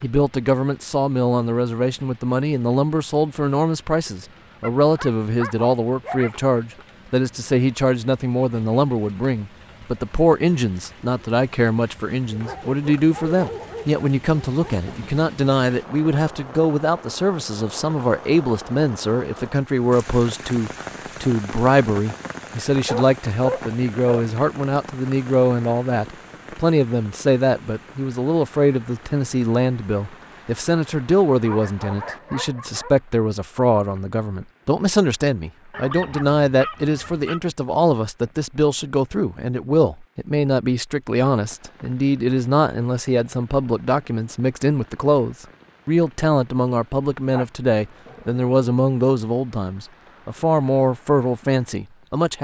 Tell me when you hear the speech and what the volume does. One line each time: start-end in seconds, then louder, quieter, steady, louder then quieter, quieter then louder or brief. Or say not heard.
0.0-52.3 steady.